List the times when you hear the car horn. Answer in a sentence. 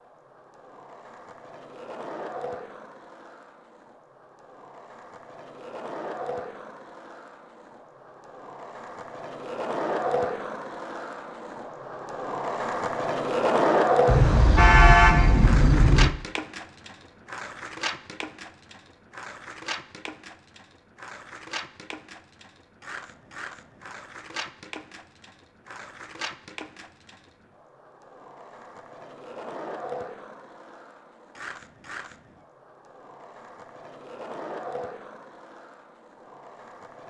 You can hear the car horn from 14.1 to 16.1 s.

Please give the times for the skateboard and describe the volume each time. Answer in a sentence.
The skateboard can be heard from 0.0 to 37.0 s, getting louder then quieter.